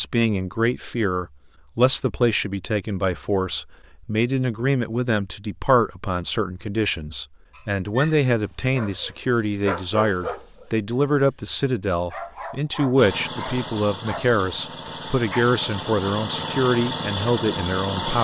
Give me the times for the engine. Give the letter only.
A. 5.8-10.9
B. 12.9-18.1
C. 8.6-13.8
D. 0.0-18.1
B.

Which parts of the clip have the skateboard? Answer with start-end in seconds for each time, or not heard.
not heard.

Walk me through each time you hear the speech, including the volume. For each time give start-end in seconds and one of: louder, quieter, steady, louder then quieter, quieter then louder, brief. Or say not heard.
0.0-18.1 steady.